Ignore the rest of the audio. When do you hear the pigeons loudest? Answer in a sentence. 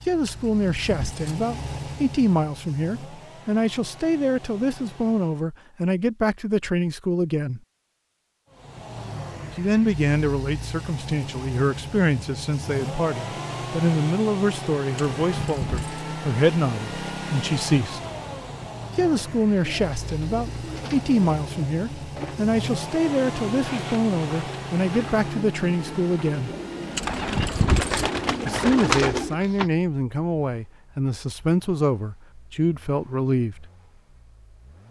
The loudest moment of the pigeons is at 29 seconds.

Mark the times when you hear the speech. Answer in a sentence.
The speech can be heard from 0.1 to 7.6 s, from 9.6 to 18.0 s, from 18.9 to 26.5 s and from 28.4 to 33.6 s.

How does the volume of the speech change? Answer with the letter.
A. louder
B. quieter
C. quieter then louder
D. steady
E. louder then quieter
D.